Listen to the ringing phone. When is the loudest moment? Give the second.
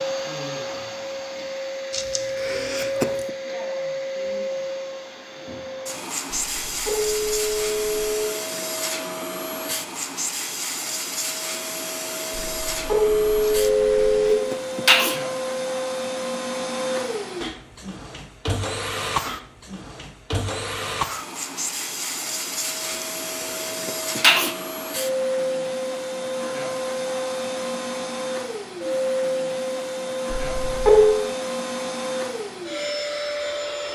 31 s.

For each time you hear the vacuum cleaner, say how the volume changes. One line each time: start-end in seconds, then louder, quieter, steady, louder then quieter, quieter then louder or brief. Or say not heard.
0.0-33.9 steady.